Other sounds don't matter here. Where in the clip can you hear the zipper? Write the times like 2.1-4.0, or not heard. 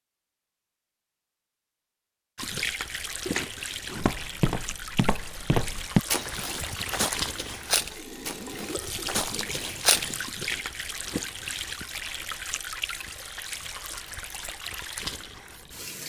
3.2-4.0, 10.4-12.2.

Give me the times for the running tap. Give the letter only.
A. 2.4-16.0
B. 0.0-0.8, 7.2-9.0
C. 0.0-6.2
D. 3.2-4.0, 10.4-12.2
A.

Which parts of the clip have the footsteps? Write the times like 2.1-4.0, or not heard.
4.0-10.2.